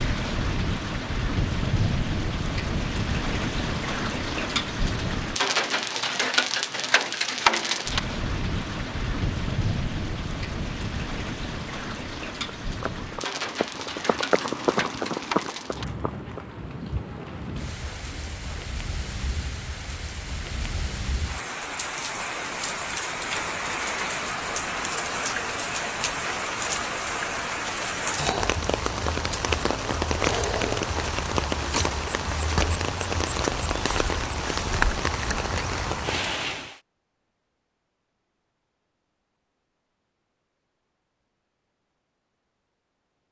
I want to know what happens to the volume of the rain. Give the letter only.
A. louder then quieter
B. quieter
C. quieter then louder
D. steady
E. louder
C.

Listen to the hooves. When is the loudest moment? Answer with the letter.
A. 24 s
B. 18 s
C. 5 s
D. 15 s
D.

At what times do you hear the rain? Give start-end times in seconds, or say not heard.
0.0-36.8.